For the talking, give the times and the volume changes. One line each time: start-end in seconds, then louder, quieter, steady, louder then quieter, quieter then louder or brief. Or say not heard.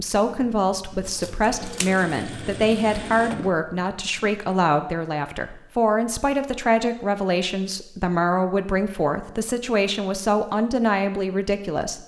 0.0-12.0 steady.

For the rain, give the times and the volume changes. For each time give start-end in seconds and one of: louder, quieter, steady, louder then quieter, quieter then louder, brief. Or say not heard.
not heard.